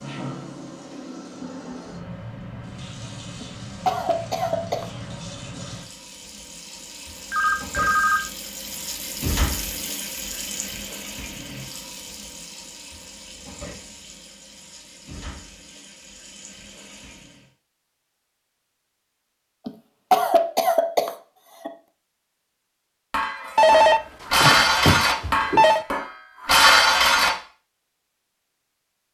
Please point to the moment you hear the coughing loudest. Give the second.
20 s.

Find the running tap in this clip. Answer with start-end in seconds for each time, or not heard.
0.0-17.5.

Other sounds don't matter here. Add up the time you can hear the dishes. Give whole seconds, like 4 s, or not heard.
4 s.